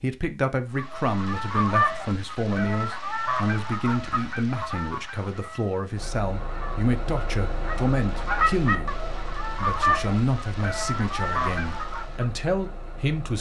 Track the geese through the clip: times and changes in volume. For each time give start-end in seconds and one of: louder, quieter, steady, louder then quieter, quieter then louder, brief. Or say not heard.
0.7-12.2 quieter then louder.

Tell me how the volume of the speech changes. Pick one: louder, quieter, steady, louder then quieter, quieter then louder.
steady.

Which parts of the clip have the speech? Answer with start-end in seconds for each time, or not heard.
0.0-8.9, 9.6-13.3.